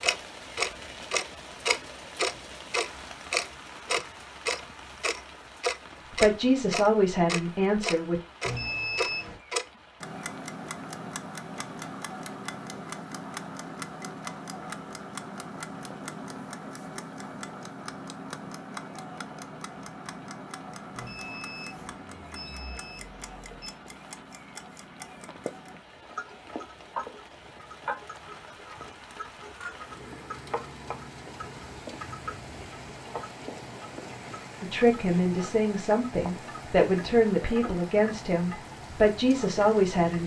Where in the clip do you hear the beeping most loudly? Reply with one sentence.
The volume of the beeping peaks at 9 seconds.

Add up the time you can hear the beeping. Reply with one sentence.
The beeping can be heard for 4 seconds in total.